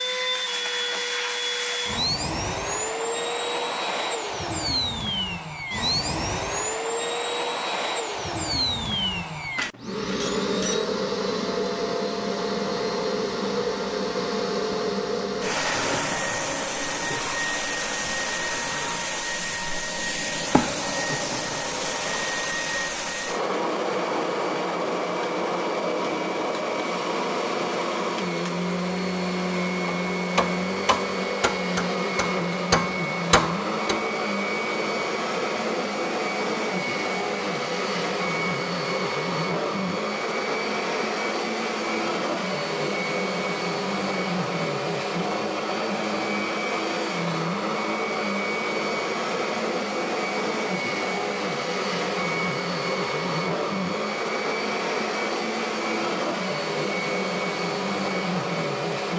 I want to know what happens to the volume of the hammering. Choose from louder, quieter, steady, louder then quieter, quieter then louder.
quieter then louder.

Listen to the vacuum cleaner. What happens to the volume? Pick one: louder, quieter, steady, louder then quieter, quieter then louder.
steady.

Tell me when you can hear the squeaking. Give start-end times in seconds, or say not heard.
10.2-10.8.